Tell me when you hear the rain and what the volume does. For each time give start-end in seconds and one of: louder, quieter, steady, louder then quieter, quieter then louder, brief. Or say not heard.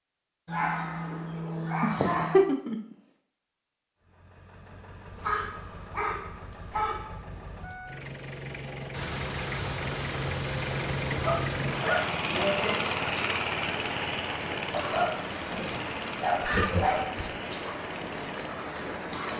8.9-19.3 steady.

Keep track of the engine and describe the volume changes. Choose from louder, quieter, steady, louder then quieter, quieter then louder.
louder then quieter.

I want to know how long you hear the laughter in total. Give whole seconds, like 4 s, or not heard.
2 s.